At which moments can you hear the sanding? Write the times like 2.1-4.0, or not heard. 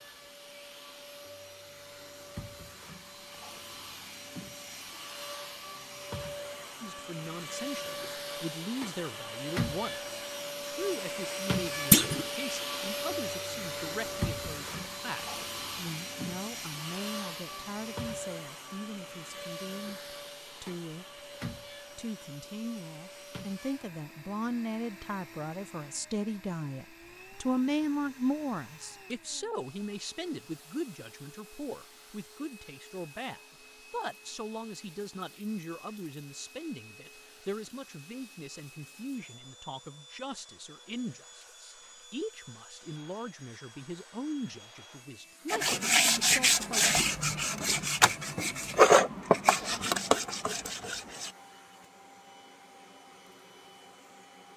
45.5-51.3.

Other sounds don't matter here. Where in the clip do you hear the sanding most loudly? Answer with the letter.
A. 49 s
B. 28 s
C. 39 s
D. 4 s
A.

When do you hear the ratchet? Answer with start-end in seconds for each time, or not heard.
not heard.